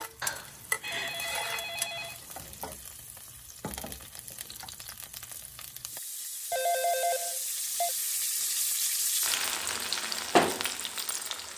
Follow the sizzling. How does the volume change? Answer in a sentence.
The loudness of the sizzling goes down, then up.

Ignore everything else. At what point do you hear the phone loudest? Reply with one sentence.
The volume of the phone peaks at 7 seconds.